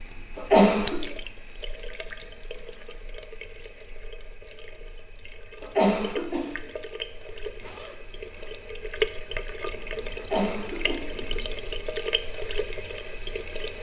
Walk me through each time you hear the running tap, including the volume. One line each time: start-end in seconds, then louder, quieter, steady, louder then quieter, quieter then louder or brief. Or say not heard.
0.0-13.7 quieter then louder.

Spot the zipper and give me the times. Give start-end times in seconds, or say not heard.
7.6-8.5.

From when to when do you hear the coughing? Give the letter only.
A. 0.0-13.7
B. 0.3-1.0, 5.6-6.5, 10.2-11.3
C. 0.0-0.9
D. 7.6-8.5
B.